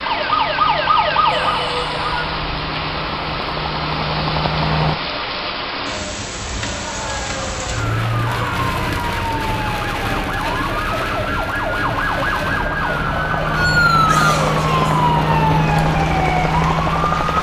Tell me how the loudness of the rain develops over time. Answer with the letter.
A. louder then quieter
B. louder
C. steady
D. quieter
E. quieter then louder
C.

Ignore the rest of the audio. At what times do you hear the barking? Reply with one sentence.
The barking can't be heard in this clip.